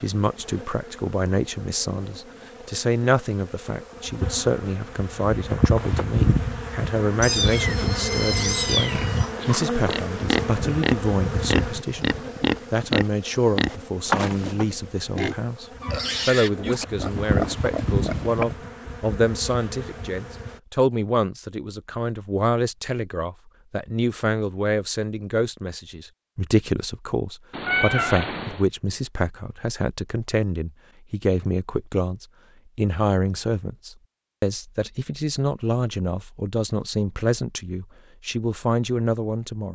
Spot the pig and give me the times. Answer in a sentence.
The pig can be heard from 9.0 to 18.7 s.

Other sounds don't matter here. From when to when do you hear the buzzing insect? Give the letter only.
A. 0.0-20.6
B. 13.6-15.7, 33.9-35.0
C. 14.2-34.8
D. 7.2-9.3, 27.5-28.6
A.